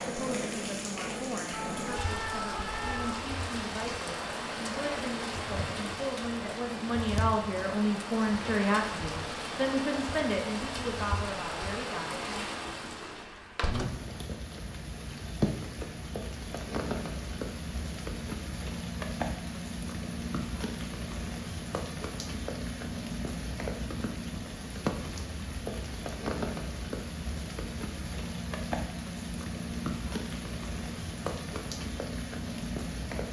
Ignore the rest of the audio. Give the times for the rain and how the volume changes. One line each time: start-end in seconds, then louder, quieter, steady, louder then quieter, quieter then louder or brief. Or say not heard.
0.0-33.2 steady.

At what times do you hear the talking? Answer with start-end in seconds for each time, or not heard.
0.1-12.4.